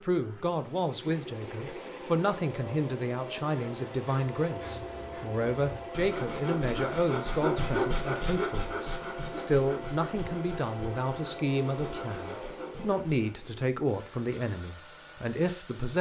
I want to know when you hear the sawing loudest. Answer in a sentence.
The volume of the sawing peaks at 8 seconds.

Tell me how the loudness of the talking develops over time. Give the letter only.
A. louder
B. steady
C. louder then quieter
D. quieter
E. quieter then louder
B.